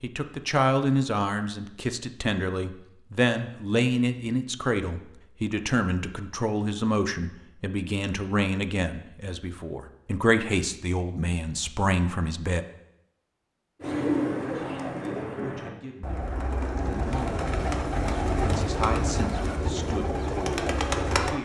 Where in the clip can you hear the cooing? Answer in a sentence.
The cooing can be heard from 13.8 to 21.4 s.